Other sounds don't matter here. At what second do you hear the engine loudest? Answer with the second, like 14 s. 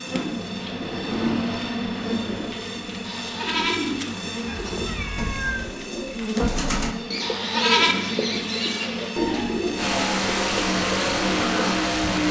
12 s.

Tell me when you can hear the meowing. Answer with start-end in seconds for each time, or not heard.
4.5-5.7.